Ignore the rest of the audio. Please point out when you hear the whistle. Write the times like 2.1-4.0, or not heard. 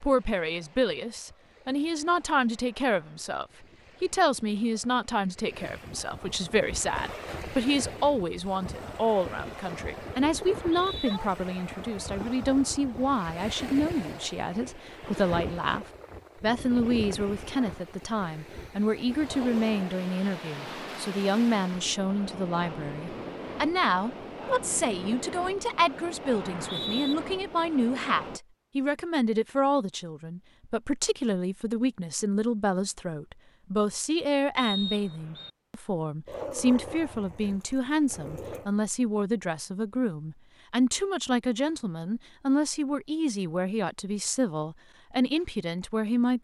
10.4-11.2, 26.4-27.1, 34.5-35.5.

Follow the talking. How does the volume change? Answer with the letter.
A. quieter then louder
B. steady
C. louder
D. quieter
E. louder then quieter
B.